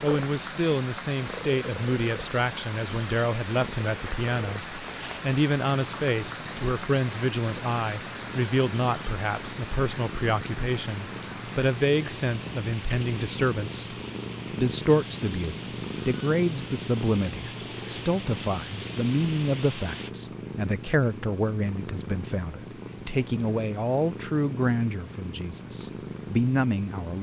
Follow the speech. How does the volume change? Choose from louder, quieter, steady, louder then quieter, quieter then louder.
steady.